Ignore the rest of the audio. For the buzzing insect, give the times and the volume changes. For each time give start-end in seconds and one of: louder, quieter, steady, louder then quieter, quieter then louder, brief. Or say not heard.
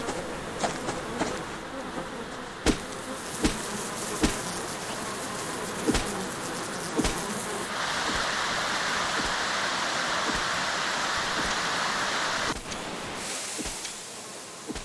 0.0-14.8 quieter.